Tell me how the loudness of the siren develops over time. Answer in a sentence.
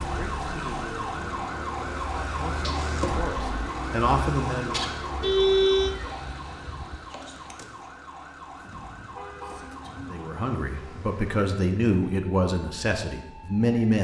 The loudness of the siren goes down.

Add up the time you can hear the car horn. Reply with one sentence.
The car horn can be heard for 2 seconds in total.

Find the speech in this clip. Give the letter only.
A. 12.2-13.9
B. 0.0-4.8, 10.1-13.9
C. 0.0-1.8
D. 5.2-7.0
B.